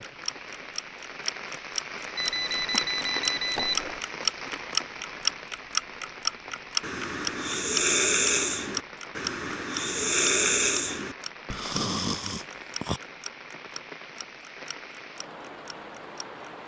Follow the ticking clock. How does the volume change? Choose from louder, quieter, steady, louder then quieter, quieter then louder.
louder then quieter.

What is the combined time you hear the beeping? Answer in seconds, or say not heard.
2 s.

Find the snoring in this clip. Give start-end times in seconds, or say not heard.
6.8-13.0.